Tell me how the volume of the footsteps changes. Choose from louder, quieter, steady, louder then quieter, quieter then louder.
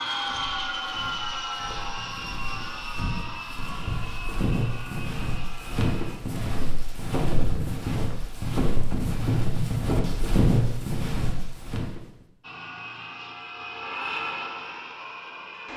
louder.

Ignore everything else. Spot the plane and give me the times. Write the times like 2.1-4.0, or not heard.
0.0-6.2, 12.4-15.7.